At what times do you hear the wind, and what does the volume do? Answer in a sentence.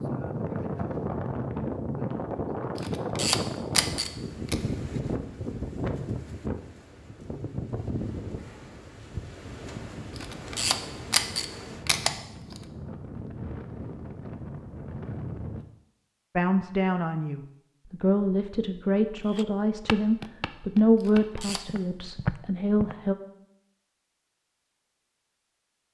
You can hear the wind from 0.0 to 15.7 s, getting quieter.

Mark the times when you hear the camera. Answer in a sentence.
The camera can be heard from 2.8 to 4.5 s, from 10.2 to 12.6 s and from 21.0 to 21.6 s.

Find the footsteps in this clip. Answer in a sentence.
You can hear the footsteps from 19.2 to 22.9 s.